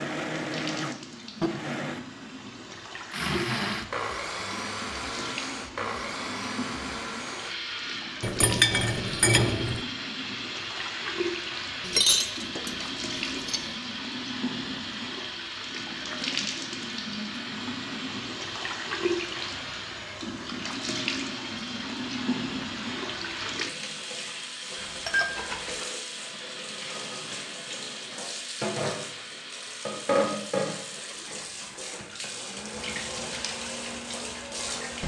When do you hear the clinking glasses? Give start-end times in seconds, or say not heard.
8.2-9.8, 11.8-13.7, 24.8-25.9.